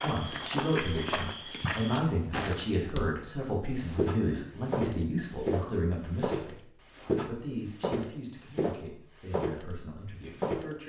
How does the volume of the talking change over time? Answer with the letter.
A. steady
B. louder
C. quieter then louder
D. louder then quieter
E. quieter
E.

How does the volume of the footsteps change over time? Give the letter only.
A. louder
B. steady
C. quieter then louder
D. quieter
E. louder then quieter
B.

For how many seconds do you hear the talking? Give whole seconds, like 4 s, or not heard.
11 s.